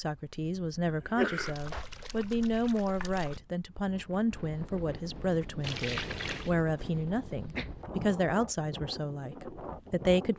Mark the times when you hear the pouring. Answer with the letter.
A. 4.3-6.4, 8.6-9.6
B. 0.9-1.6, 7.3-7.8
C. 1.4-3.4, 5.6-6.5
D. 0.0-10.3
C.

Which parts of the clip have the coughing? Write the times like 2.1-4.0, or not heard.
0.9-1.6, 7.3-7.8.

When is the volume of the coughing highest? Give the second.
1 s.